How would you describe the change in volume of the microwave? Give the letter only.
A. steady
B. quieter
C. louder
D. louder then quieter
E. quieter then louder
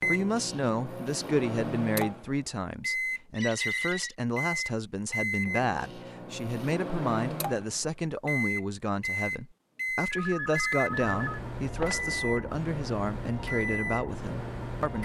A.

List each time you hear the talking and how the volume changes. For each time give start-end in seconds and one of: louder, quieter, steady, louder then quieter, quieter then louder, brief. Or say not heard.
0.1-14.9 steady.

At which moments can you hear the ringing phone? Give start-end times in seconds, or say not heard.
3.4-4.2, 10.1-11.9.